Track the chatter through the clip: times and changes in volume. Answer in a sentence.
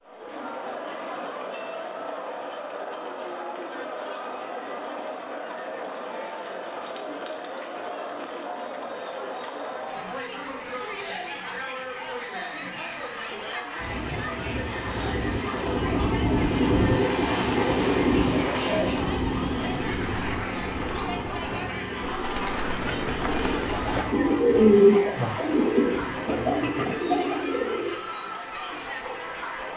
You can hear the chatter from 0.0 to 29.7 s, at a steady volume.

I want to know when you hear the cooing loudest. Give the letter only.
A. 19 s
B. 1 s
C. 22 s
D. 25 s
D.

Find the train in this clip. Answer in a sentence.
You can hear the train from 13.8 to 26.4 s.